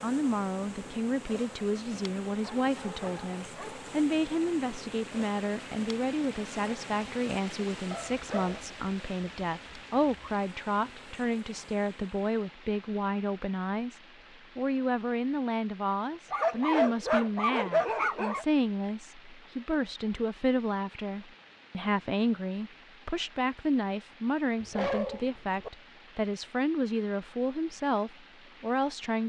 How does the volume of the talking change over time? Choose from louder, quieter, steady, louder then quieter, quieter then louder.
steady.